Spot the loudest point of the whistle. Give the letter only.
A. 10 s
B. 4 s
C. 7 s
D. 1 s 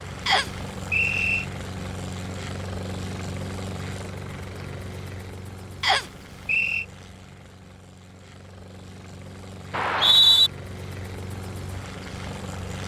A.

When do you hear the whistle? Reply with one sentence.
You can hear the whistle from 0.2 to 1.4 s, from 5.8 to 6.8 s and from 9.7 to 10.5 s.